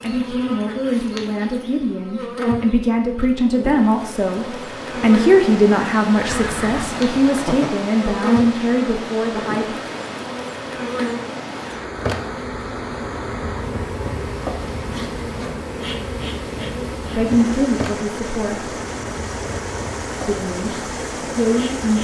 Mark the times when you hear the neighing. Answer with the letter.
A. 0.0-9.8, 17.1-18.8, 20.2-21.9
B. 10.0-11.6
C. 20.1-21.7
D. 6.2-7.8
D.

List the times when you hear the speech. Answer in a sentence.
You can hear the speech from 0.0 to 9.8 s, from 17.1 to 18.8 s and from 20.2 to 21.9 s.